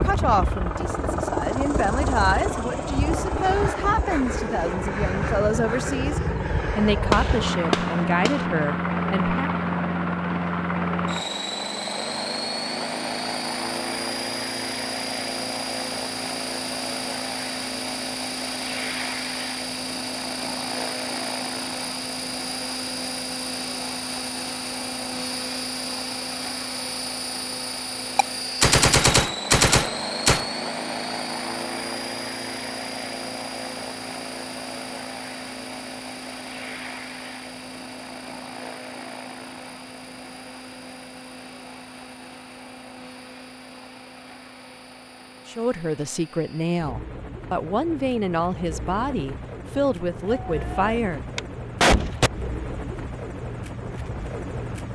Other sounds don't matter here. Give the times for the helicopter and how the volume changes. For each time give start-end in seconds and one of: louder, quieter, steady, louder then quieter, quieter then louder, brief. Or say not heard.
0.0-54.9 quieter.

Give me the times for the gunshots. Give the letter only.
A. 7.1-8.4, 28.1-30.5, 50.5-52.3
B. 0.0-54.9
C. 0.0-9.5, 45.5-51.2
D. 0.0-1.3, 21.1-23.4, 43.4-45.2
A.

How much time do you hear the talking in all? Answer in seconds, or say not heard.
15 s.